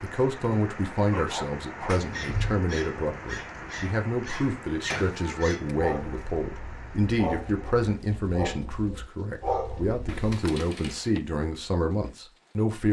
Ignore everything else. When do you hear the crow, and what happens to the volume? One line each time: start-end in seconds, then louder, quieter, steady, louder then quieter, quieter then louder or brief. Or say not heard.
not heard.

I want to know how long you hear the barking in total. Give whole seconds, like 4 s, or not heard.
9 s.